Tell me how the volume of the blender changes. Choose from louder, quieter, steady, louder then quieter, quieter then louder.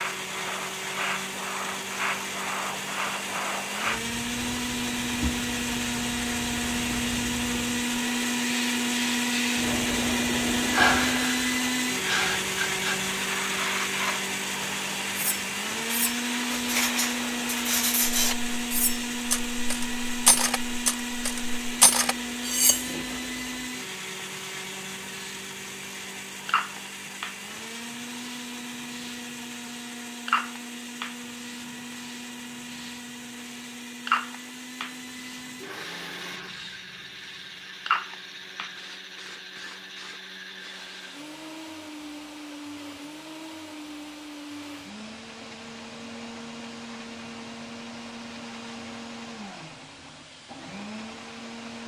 quieter.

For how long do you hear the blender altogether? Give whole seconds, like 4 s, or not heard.
52 s.